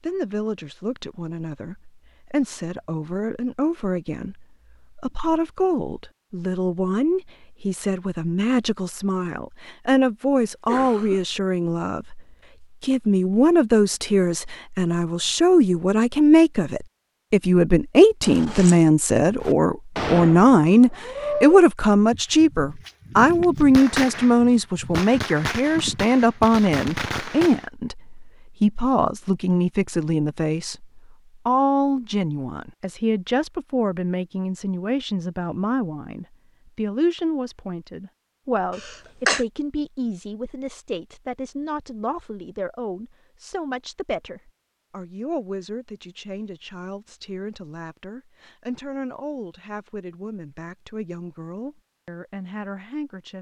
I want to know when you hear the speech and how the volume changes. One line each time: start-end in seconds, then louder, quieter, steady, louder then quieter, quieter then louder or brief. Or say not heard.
0.0-53.3 louder then quieter.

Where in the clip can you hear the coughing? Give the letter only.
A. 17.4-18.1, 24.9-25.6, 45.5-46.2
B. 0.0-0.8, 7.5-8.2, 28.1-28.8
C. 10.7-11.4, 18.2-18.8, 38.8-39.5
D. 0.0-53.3
C.